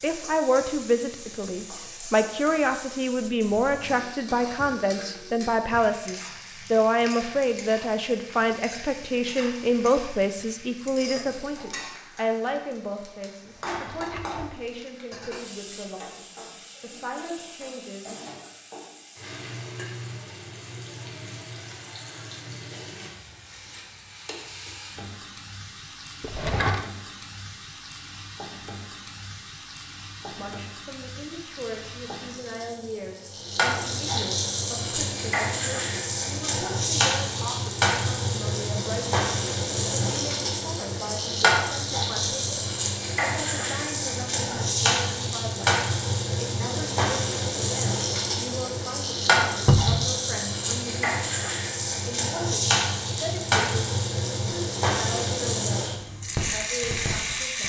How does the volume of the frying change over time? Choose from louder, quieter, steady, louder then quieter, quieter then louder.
louder.